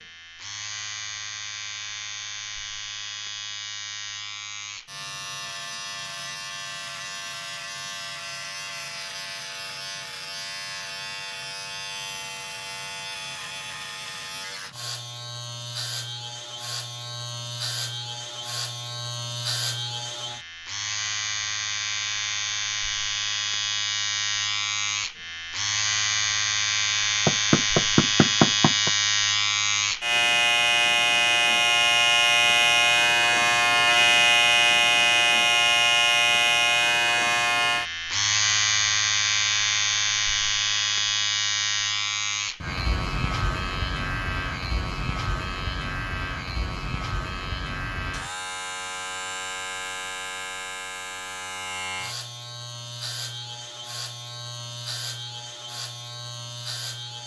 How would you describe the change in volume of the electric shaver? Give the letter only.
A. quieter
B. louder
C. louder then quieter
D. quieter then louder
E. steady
C.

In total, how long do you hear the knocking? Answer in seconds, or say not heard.
2 s.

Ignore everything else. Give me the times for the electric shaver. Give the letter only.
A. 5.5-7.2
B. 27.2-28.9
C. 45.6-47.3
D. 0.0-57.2
D.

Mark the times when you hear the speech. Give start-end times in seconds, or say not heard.
not heard.